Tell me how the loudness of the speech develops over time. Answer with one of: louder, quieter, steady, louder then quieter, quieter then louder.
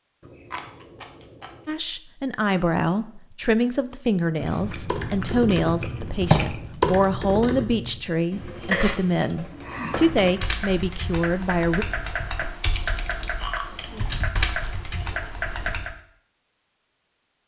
steady.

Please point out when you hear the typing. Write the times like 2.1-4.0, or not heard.
4.8-15.9.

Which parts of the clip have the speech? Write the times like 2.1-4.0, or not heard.
1.6-11.8.